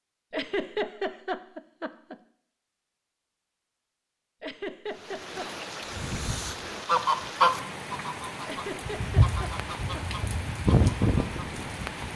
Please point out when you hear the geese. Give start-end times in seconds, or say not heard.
5.9-12.1.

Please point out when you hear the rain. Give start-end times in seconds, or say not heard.
4.8-12.1.